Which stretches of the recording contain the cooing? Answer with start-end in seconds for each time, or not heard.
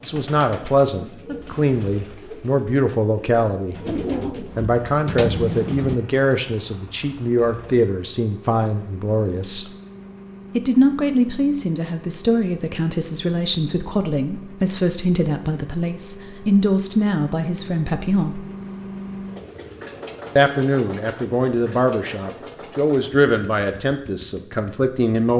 0.0-6.0.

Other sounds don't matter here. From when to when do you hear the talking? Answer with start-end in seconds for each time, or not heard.
0.1-9.7, 10.6-18.4, 20.4-25.3.